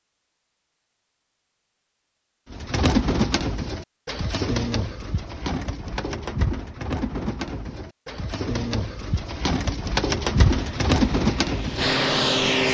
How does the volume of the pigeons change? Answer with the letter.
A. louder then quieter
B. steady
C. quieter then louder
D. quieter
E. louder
C.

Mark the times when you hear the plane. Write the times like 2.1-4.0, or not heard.
10.5-12.6.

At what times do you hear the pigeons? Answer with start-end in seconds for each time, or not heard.
2.5-11.9.